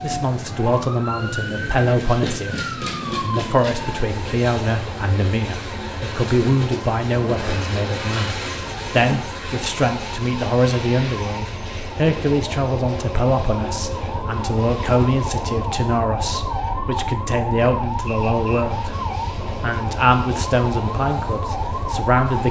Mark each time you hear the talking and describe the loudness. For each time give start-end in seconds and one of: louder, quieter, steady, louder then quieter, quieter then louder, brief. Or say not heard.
0.0-19.0 steady
19.6-22.4 brief.